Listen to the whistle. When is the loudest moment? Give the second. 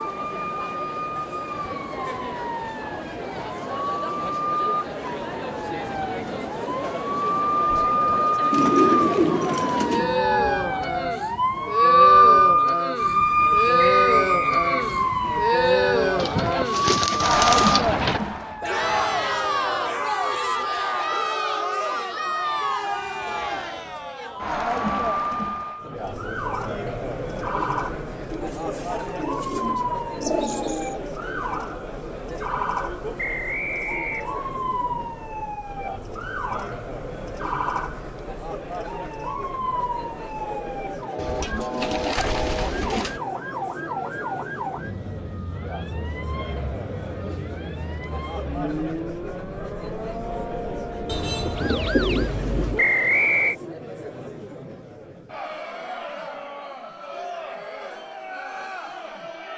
53 s.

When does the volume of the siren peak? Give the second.
12 s.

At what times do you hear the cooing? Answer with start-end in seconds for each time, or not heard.
8.5-10.2, 16.1-18.2, 28.3-31.0, 41.1-43.2, 51.0-52.8.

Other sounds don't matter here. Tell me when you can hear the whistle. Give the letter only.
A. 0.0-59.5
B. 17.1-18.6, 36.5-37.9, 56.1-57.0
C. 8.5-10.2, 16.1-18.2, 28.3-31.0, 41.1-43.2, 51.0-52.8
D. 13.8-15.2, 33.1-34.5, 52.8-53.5
D.